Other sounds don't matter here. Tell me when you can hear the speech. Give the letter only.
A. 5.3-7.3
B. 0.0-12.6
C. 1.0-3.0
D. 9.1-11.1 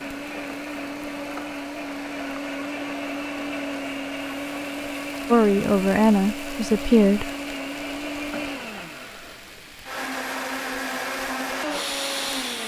A.